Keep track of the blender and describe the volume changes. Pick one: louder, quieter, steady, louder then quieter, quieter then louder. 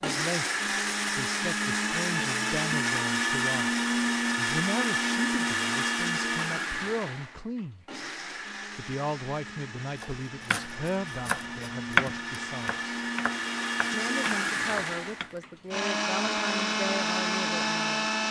quieter then louder.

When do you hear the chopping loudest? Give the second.
12 s.